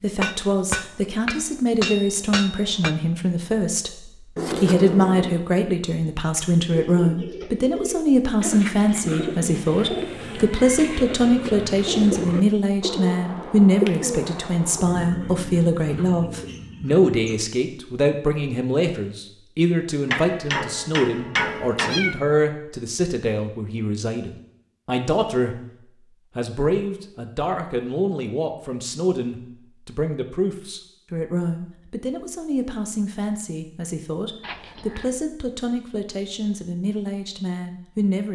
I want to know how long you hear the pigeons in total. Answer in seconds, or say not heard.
11 s.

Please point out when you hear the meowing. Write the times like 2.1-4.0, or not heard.
4.3-5.5, 21.4-22.2, 34.4-35.1.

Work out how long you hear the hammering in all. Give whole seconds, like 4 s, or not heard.
5 s.